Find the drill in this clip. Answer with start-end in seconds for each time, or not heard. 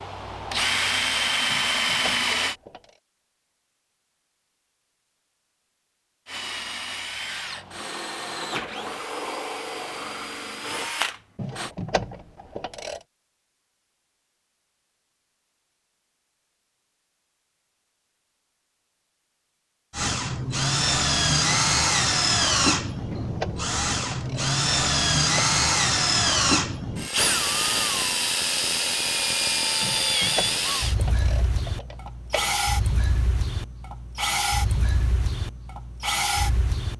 0.0-2.5, 6.2-11.7, 19.9-36.9.